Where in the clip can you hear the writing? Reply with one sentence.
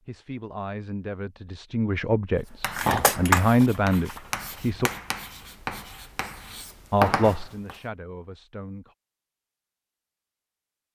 The writing can be heard from 2.6 to 7.8 s.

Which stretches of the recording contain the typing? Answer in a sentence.
The typing can be heard from 2.8 to 4.5 s.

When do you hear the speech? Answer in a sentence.
The speech can be heard from 0.1 to 4.9 s and from 6.9 to 8.9 s.